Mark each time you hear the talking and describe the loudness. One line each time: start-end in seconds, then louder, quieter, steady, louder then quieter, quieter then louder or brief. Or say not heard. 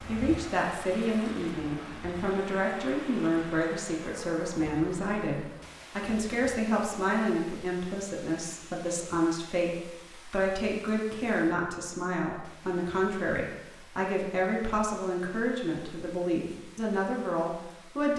0.1-18.1 steady.